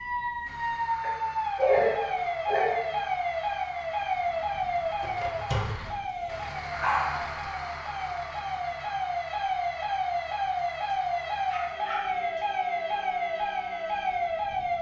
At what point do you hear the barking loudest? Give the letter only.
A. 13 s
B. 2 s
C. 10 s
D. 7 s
B.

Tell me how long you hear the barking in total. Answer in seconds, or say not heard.
5 s.